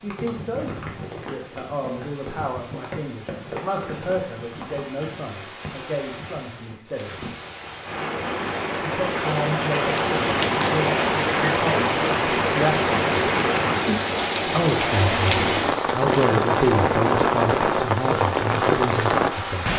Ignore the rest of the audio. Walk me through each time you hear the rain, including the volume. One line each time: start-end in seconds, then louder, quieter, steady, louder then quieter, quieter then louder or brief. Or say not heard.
0.0-19.7 louder.